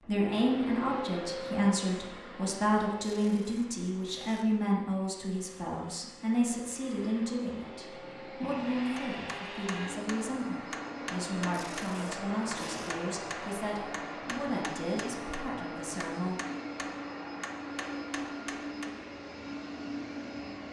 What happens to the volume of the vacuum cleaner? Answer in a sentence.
The loudness of the vacuum cleaner goes down, then up.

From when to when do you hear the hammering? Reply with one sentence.
You can hear the hammering from 8.9 to 19.1 s.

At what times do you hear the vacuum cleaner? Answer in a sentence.
The vacuum cleaner can be heard from 0.0 to 20.6 s.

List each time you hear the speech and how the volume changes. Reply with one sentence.
You can hear the speech from 0.1 to 16.4 s, getting quieter.